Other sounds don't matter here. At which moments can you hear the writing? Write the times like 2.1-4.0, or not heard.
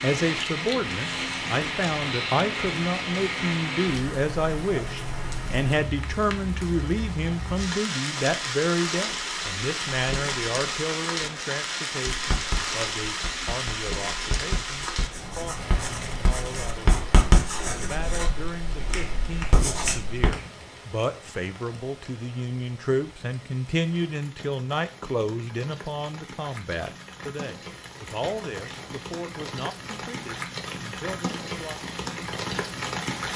12.1-20.3.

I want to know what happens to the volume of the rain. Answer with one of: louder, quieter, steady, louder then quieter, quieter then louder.
quieter then louder.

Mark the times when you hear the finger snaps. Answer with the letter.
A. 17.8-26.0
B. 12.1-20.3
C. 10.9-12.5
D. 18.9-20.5
D.